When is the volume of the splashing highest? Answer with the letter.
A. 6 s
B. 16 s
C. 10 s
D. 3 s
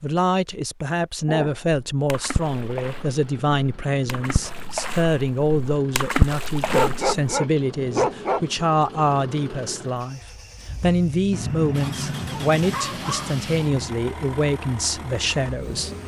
A.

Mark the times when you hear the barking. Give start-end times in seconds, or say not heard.
1.2-2.3, 6.5-8.4, 11.3-14.0.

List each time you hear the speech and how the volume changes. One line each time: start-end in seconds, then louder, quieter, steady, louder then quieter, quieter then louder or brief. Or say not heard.
0.0-15.9 steady.